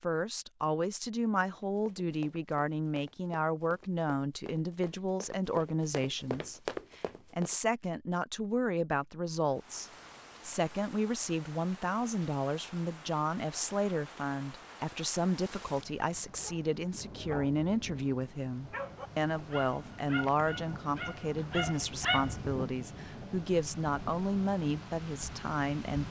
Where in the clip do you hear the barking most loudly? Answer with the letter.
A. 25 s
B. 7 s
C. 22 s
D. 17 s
C.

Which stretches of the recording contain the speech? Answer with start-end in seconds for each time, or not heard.
0.0-26.0.